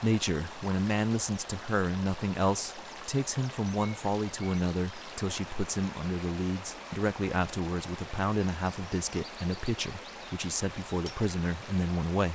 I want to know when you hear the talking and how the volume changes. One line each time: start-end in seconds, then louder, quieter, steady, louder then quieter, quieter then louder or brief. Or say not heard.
0.0-12.3 steady.